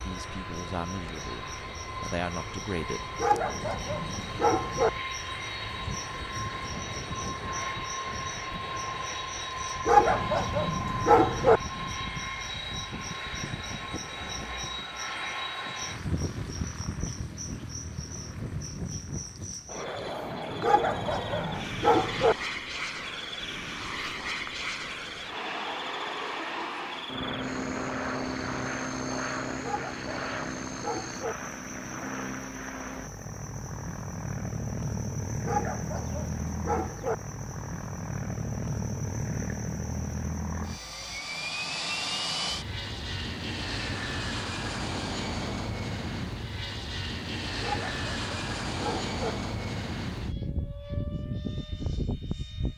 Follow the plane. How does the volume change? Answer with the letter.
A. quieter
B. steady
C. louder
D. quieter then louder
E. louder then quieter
B.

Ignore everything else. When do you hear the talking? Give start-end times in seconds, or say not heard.
0.0-3.2.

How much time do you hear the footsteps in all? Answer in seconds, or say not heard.
not heard.